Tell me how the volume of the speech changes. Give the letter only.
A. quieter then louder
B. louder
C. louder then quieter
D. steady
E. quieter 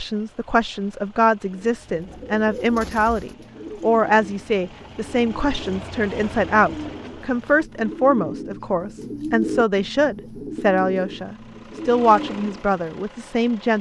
D.